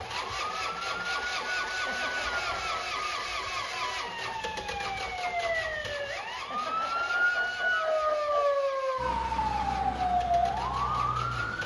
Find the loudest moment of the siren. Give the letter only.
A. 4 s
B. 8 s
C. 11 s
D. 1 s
B.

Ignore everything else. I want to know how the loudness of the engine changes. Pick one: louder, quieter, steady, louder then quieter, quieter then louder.
quieter.